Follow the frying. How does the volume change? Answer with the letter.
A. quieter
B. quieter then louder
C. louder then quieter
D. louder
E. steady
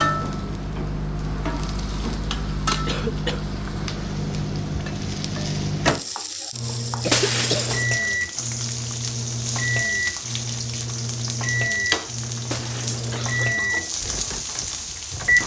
E.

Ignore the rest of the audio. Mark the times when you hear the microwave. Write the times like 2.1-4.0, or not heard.
0.0-15.4.